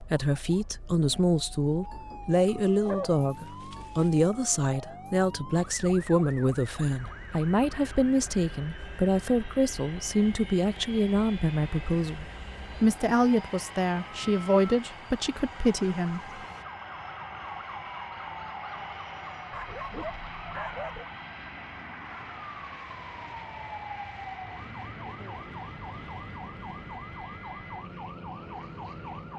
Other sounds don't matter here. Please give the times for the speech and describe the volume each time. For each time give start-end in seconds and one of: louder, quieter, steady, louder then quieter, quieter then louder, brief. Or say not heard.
0.0-16.4 steady.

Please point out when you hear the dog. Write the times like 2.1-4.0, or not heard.
2.5-4.1, 19.5-21.1.